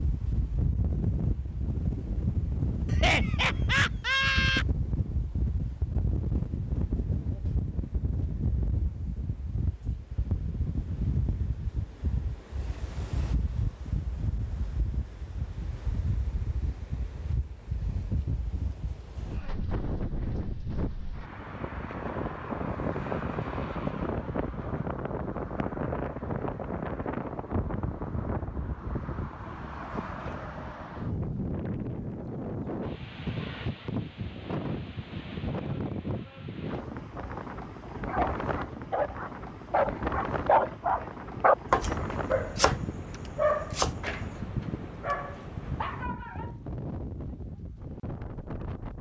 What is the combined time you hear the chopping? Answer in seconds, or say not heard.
3 s.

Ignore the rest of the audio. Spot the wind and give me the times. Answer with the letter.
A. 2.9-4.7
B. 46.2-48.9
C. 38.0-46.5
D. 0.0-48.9
D.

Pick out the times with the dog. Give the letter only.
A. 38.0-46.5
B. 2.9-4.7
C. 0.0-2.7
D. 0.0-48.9
A.